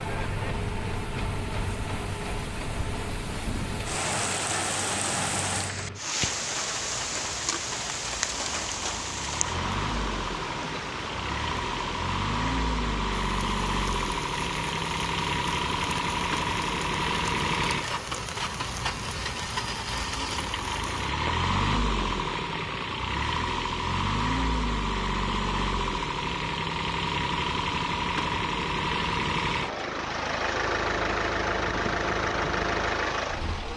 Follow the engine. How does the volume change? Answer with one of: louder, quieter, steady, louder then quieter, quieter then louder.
louder.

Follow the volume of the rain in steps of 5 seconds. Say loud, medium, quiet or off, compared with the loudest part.
loud, loud, medium, medium, medium, off, off.